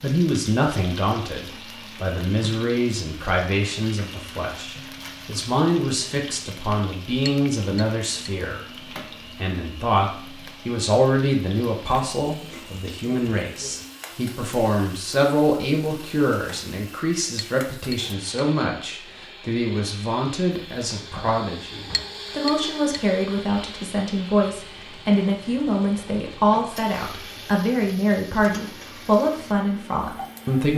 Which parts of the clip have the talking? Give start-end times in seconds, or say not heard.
0.0-30.7.